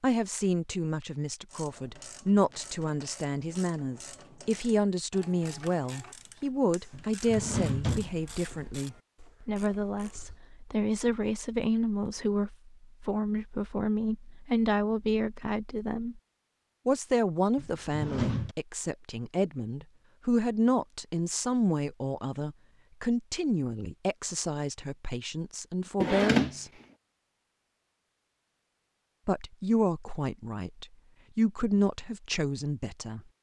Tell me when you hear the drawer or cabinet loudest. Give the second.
26 s.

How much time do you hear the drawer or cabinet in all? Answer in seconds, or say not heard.
3 s.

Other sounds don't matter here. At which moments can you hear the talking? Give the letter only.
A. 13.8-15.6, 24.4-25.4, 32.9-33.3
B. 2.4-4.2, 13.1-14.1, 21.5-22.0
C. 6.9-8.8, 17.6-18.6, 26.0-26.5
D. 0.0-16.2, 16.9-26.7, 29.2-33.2
D.